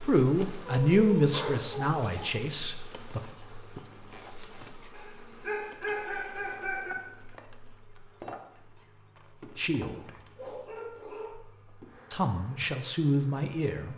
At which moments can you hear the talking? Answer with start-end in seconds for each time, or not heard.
0.0-3.2, 9.6-10.1, 12.1-13.9.